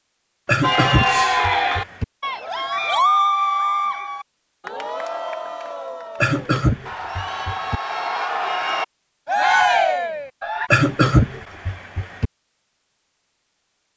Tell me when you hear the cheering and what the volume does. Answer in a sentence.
The cheering can be heard from 0.6 to 10.7 s, getting quieter then louder.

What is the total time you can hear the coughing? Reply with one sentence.
The coughing can be heard for 5 seconds in total.